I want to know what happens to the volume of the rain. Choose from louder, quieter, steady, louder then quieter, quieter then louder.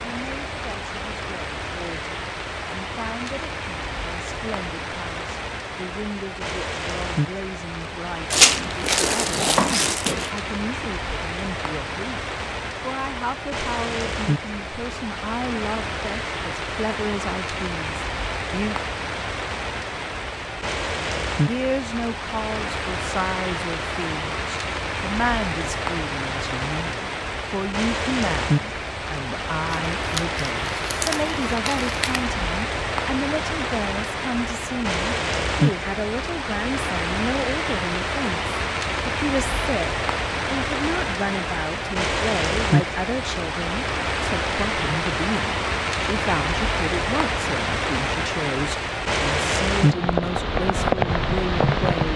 louder.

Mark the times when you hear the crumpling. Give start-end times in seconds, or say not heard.
8.3-10.3, 29.7-32.2.